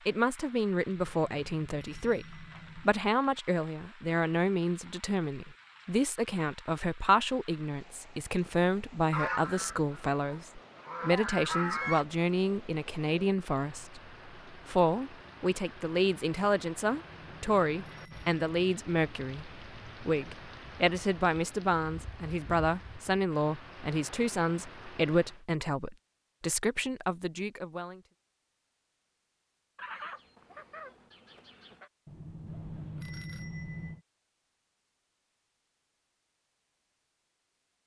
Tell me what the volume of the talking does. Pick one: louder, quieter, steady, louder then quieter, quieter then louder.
steady.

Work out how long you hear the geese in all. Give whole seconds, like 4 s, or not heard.
5 s.